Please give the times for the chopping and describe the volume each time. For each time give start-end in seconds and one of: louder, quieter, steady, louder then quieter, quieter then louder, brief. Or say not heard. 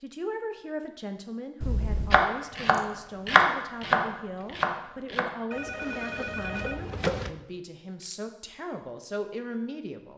2.1-7.3 quieter.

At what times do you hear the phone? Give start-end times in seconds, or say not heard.
1.6-2.2, 5.5-7.3.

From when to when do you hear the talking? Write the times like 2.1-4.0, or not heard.
0.0-10.1.